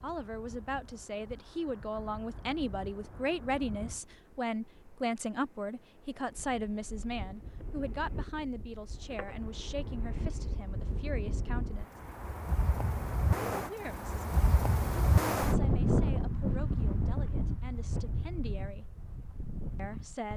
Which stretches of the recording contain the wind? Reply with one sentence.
You can hear the wind from 0.0 to 20.3 s.